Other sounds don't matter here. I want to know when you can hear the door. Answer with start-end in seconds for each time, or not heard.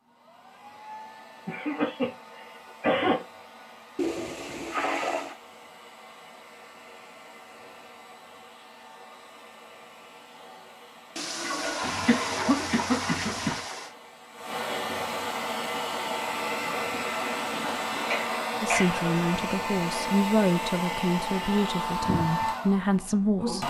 not heard.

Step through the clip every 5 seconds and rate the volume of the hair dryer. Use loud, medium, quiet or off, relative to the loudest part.
quiet, quiet, medium, loud, loud.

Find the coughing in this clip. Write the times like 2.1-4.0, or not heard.
1.4-3.2, 11.8-13.6, 18.1-19.0.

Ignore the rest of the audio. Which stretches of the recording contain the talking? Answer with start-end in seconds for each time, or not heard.
18.6-23.6.